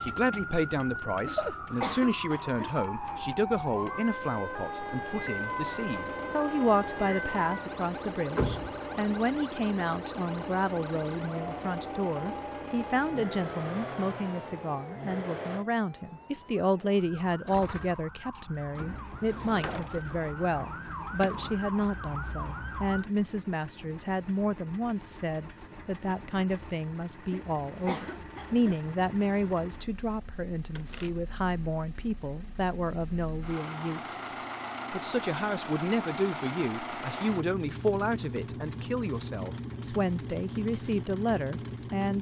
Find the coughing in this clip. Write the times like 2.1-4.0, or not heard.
1.2-3.2, 27.3-28.8.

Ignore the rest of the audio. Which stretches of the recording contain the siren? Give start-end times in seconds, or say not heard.
0.0-23.1.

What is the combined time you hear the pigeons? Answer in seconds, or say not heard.
not heard.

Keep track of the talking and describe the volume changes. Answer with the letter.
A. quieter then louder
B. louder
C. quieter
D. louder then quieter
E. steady
E.